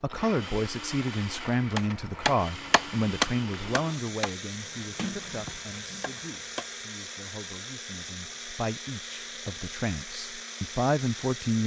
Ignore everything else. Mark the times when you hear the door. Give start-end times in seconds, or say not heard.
5.0-6.2.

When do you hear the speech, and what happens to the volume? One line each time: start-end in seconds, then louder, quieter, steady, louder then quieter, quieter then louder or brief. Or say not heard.
0.0-11.6 quieter then louder.